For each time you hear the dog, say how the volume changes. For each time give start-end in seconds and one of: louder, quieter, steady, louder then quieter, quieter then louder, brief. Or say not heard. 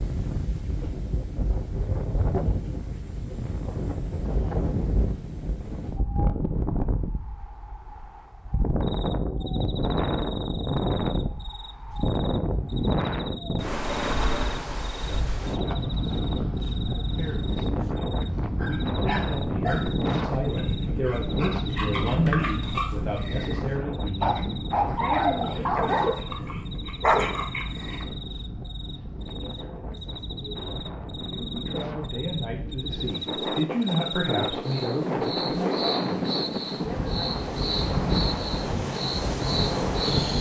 18.6-28.1 louder.